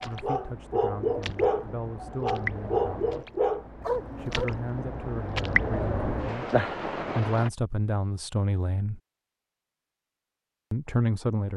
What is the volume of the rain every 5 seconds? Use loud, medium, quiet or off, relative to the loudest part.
medium, loud, off.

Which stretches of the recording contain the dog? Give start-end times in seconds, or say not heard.
0.0-4.5.